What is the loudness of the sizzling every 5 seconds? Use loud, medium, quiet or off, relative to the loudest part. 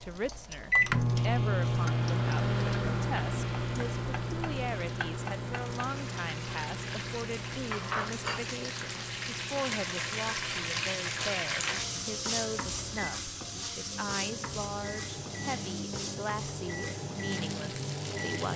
quiet, loud, loud, medium.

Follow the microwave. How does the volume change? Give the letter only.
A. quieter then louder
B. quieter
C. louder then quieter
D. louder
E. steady
A.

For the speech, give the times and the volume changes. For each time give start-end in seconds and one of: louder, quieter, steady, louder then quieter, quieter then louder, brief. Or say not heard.
0.0-18.5 steady.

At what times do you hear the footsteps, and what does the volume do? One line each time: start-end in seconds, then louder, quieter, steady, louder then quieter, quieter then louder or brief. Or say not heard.
not heard.